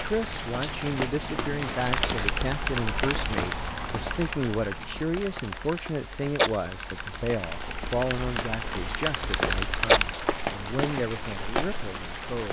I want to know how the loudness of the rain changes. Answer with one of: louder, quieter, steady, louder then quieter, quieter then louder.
quieter then louder.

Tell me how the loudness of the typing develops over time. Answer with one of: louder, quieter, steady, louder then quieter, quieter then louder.
quieter then louder.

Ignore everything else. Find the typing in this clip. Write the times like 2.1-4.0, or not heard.
1.8-10.2.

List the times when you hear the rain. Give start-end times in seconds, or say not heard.
0.0-12.4.